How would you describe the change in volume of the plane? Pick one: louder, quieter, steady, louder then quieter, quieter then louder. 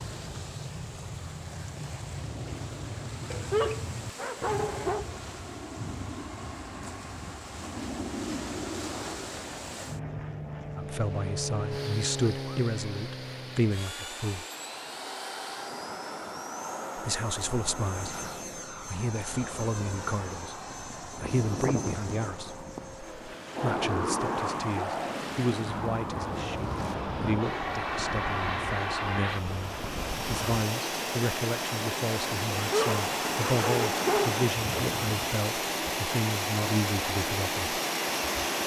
louder.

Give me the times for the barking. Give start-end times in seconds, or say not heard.
3.3-5.0, 32.6-34.3.